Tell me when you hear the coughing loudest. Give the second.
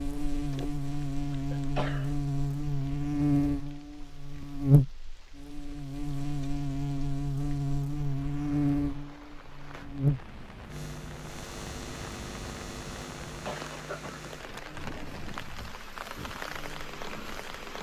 2 s.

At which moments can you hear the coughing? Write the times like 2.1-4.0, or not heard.
1.5-2.1, 13.2-14.8.